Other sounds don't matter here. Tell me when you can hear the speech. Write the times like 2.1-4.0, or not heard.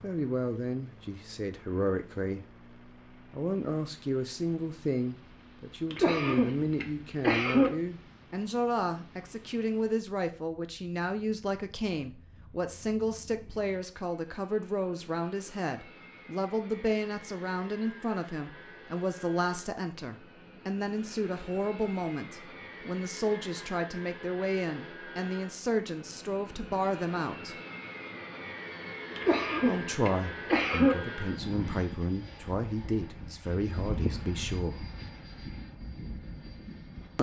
0.0-27.6, 29.6-34.9.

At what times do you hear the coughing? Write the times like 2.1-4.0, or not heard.
5.9-7.7, 29.1-30.9.